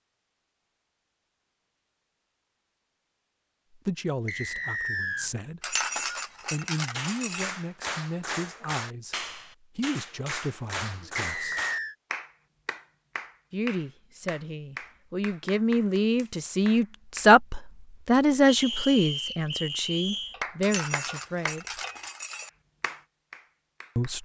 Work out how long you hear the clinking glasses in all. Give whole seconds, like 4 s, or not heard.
4 s.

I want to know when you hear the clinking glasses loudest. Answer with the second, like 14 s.
6 s.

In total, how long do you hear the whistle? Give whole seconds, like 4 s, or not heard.
4 s.